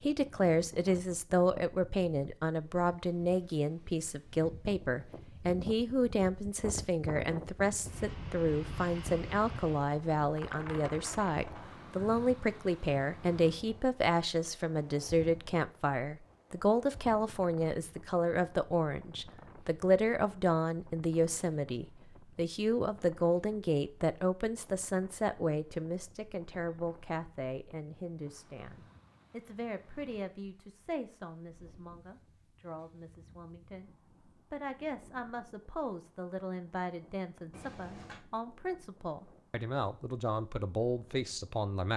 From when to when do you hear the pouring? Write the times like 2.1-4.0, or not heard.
37.5-38.2.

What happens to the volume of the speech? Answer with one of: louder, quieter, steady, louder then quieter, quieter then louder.
quieter.